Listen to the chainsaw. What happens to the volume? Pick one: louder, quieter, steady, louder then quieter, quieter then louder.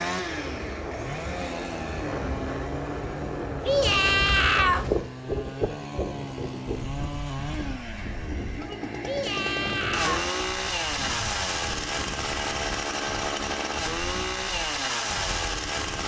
louder.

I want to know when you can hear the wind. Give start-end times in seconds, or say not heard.
0.1-16.0.